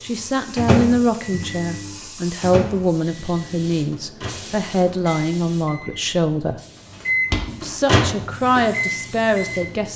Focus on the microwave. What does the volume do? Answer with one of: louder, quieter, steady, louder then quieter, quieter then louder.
quieter then louder.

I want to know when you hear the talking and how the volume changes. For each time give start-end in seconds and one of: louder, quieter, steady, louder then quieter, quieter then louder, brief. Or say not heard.
0.0-6.6 steady
7.6-9.9 brief.